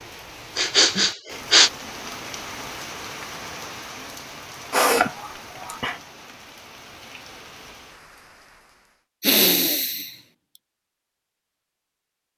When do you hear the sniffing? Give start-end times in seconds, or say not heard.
0.6-1.7, 4.7-6.0, 9.2-10.1.